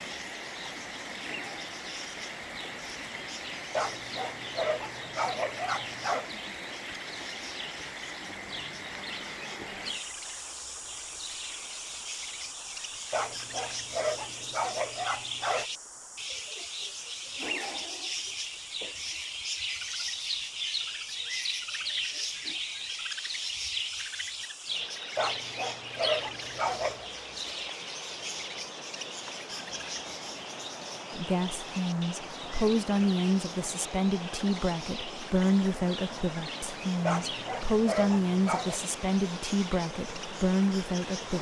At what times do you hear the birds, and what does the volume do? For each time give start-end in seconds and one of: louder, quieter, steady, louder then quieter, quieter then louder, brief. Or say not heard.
0.0-41.3 louder then quieter.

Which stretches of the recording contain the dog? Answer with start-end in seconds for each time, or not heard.
3.7-6.3, 13.1-15.7, 25.1-27.1, 37.0-38.8.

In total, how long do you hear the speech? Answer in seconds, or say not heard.
10 s.